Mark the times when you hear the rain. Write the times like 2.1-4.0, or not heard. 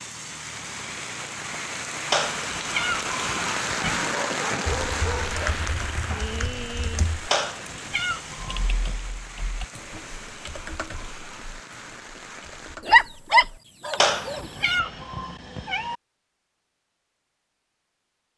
0.0-12.8.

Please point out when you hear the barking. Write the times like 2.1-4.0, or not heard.
3.8-5.5, 12.8-14.4.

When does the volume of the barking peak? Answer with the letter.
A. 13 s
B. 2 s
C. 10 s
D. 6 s
A.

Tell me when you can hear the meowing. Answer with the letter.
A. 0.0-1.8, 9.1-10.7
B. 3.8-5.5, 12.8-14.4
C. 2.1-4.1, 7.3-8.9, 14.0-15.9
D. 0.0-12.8
C.